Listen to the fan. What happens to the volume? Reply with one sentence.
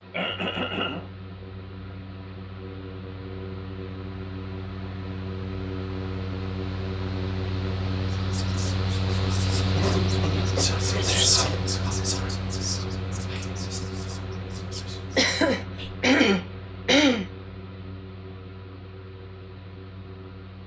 The volume of the fan goes up, then down.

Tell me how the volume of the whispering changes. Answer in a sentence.
The loudness of the whispering goes up, then down.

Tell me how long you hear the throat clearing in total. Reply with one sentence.
The throat clearing can be heard for 5 seconds in total.